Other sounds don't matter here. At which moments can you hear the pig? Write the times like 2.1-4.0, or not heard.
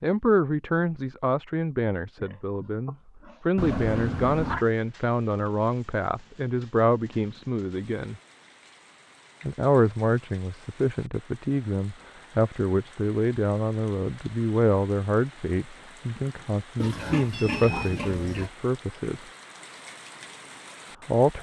2.1-4.0, 16.8-18.5.